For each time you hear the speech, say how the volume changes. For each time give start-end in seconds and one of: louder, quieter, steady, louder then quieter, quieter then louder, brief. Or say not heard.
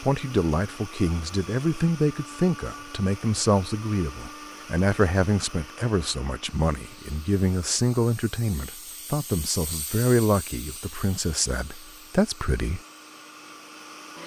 0.0-12.8 steady.